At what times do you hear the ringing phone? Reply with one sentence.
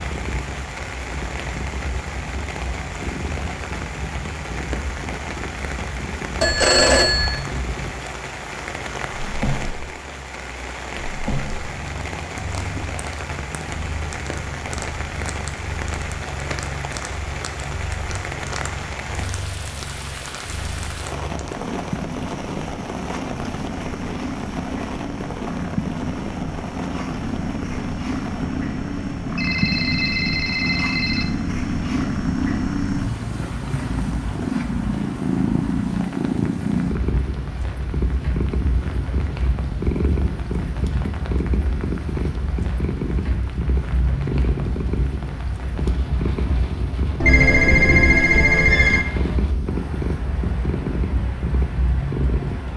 You can hear the ringing phone from 6.4 to 7.4 s, from 29.4 to 31.2 s and from 47.2 to 49.0 s.